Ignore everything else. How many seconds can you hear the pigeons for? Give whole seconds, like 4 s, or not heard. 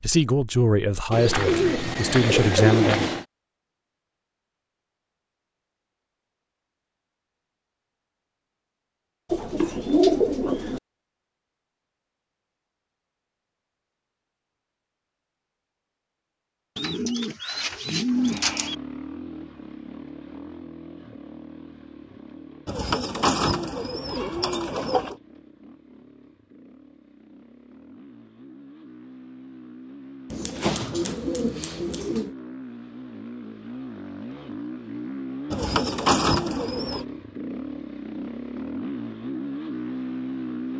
12 s.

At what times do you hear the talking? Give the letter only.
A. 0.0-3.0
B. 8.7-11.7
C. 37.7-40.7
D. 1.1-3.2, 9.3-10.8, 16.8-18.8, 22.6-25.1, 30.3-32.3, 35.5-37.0
A.